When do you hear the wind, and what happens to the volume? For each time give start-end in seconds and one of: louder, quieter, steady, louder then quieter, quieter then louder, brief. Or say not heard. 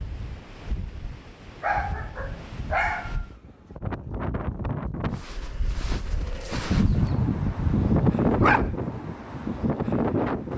0.0-10.5 louder.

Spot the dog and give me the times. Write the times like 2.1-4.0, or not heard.
1.6-3.2, 6.7-8.8.